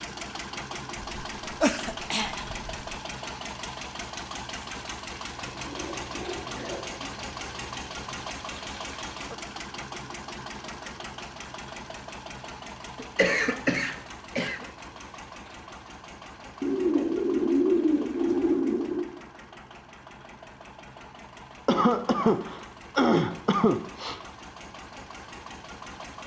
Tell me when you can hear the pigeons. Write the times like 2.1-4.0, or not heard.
5.3-8.2, 16.6-19.1.